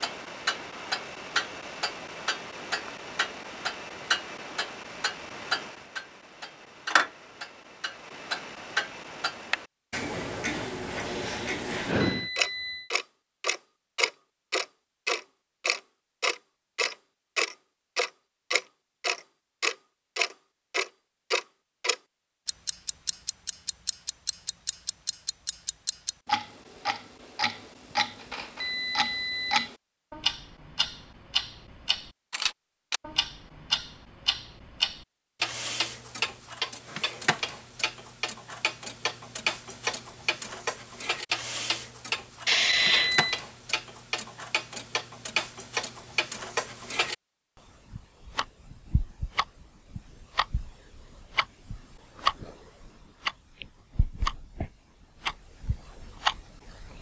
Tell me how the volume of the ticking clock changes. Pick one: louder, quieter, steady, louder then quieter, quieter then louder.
steady.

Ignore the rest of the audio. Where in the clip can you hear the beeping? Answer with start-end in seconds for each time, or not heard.
12.0-12.9, 28.6-29.7, 42.6-43.4.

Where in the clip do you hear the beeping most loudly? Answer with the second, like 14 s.
43 s.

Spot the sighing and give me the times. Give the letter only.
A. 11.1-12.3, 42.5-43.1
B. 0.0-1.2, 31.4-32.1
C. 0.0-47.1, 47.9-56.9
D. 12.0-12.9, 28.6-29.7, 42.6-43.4
A.